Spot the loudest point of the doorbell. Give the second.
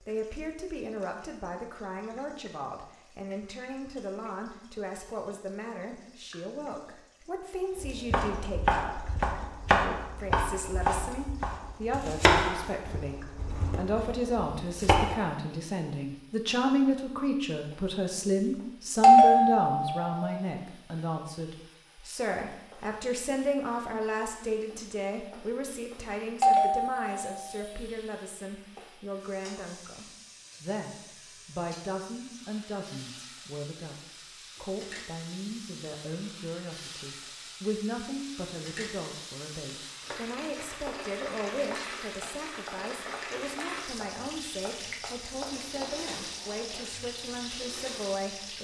19 s.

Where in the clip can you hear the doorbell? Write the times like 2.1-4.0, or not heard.
19.0-20.2, 26.4-27.6.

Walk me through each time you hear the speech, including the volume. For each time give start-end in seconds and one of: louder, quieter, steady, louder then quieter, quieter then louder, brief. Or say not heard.
0.0-48.5 louder then quieter.